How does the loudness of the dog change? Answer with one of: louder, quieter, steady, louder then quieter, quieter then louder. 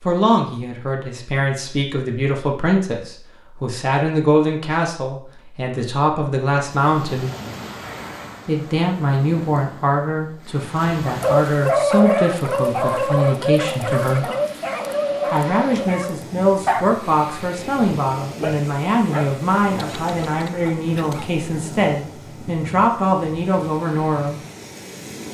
quieter.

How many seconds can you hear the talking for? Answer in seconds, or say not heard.
22 s.